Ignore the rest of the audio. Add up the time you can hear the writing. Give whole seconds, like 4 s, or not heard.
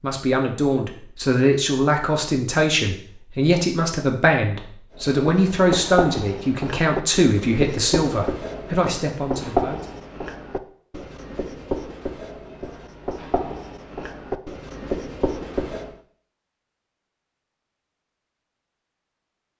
11 s.